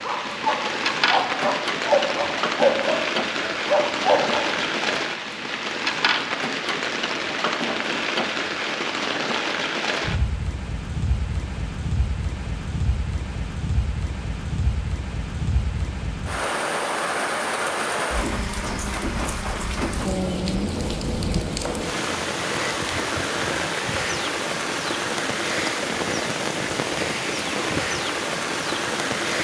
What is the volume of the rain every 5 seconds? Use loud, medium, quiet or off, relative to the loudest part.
loud, loud, medium, loud, loud, loud.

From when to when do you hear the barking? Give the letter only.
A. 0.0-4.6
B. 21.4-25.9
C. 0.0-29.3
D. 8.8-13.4
A.